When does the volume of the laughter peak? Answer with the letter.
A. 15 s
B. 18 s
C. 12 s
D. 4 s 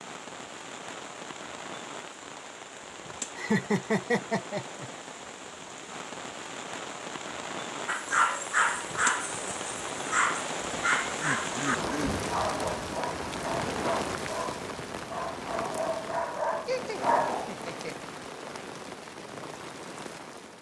D.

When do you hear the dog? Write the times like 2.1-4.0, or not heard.
7.8-17.6.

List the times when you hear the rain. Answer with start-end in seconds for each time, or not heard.
0.0-20.5.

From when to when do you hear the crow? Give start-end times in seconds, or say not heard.
not heard.